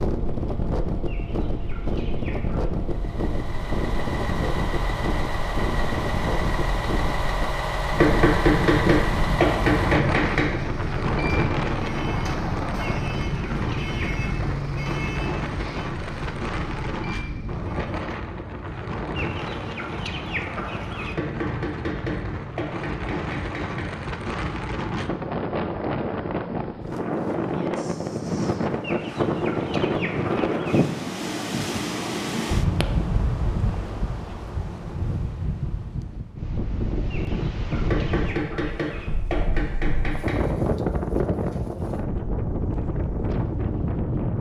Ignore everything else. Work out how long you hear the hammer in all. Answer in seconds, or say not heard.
8 s.